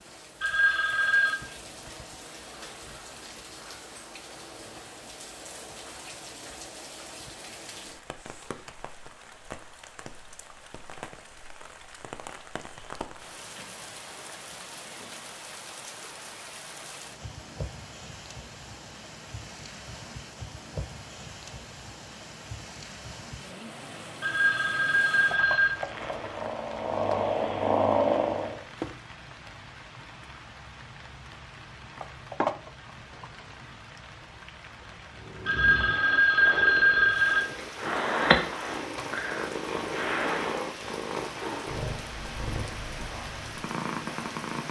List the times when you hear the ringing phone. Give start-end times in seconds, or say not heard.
0.4-1.4, 24.2-25.8, 35.5-37.5.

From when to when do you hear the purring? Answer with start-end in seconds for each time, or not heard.
25.6-28.6, 35.1-44.6.